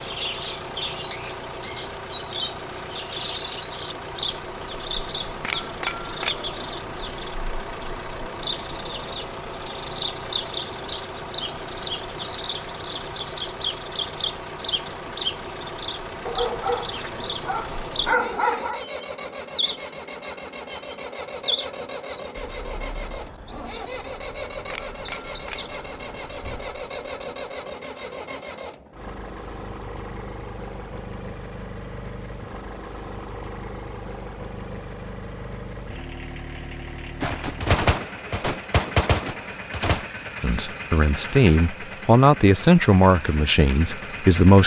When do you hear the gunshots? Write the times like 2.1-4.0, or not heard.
5.4-7.0, 24.7-26.2, 37.2-40.0.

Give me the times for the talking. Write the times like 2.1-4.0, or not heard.
40.4-44.6.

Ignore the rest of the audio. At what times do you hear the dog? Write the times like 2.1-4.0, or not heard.
16.2-18.8.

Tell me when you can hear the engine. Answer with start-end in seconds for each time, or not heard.
0.0-44.6.